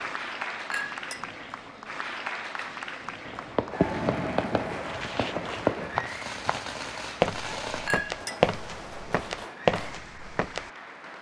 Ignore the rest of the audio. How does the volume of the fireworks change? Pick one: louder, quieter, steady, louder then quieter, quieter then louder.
quieter.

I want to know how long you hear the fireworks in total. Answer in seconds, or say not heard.
7 s.